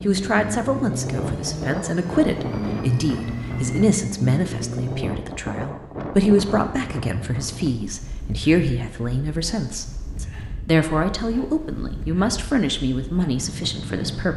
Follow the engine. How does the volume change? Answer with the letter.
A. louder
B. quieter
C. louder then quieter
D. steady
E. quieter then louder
D.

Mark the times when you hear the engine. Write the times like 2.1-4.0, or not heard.
0.0-5.1.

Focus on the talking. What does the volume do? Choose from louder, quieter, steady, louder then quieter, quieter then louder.
steady.